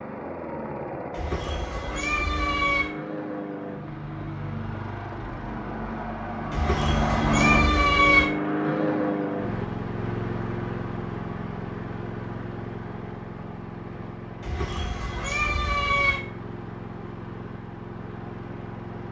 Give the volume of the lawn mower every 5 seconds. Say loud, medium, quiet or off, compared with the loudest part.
medium, loud, medium, medium.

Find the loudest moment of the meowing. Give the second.
8 s.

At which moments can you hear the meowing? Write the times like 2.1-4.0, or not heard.
1.1-2.9, 6.5-8.3, 14.4-16.2.